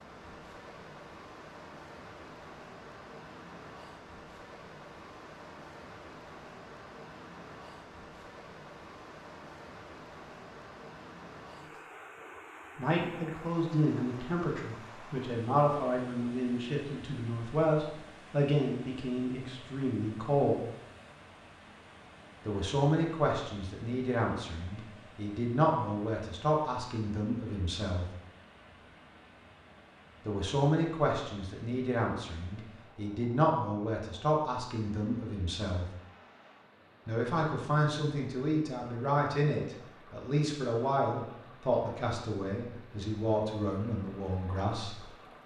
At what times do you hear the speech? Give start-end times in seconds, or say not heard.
12.8-20.6, 22.4-28.1, 30.2-35.9, 37.0-45.0.